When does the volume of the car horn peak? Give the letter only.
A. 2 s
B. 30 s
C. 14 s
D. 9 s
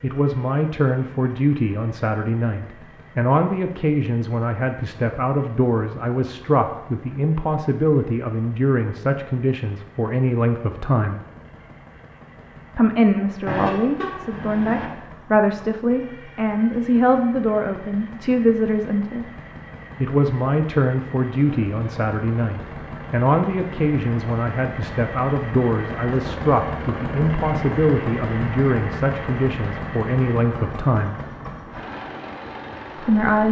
C.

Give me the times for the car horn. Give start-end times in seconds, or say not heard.
13.4-14.9.